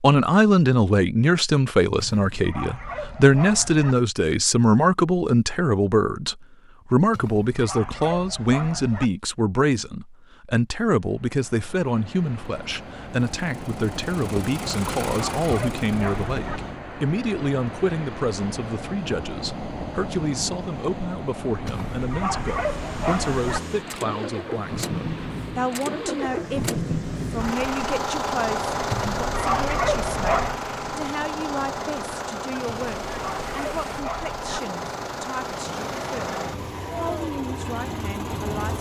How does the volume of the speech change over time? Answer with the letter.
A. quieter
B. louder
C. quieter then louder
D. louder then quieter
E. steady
A.